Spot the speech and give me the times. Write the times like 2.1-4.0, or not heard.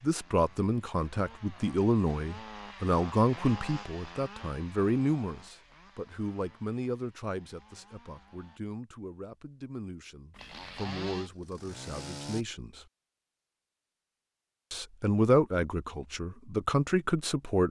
0.0-12.8, 14.7-17.6.